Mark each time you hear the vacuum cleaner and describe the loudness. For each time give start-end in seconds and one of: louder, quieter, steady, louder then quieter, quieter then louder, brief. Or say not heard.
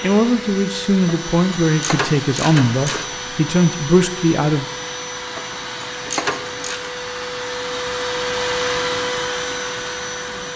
0.0-10.5 louder.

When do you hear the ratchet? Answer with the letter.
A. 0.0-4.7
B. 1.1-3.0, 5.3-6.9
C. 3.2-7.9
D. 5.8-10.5
B.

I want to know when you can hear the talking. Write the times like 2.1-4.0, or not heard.
0.0-4.7.